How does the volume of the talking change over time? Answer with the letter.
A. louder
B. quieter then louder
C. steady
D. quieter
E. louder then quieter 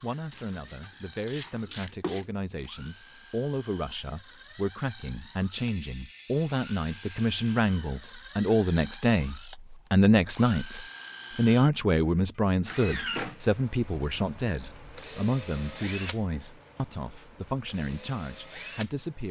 E.